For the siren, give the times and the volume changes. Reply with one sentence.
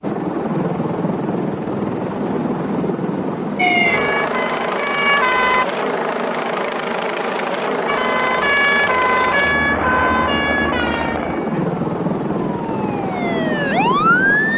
You can hear the siren briefly from 3.5 to 5.7 s; and from 7.8 to 14.5 s, getting quieter then louder.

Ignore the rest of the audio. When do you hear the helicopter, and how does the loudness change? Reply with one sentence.
The helicopter can be heard from 0.0 to 14.5 s, at a steady volume.